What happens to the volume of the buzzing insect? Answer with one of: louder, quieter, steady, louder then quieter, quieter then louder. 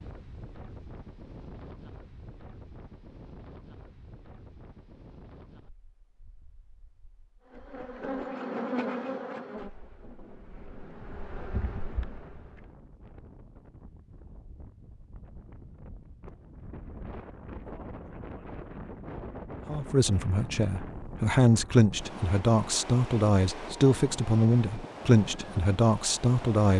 quieter then louder.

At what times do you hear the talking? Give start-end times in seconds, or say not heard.
19.6-26.7.